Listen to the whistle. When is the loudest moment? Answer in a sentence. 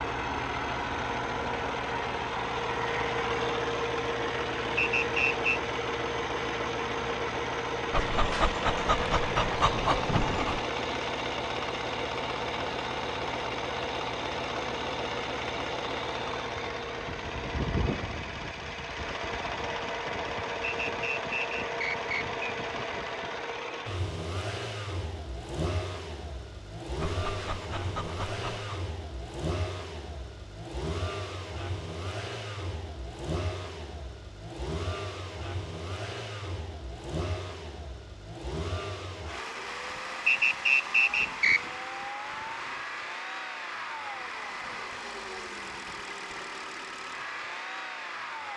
The volume of the whistle peaks at 41 seconds.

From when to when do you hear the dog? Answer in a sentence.
You can hear the dog from 7.9 to 10.7 s and from 27.0 to 28.8 s.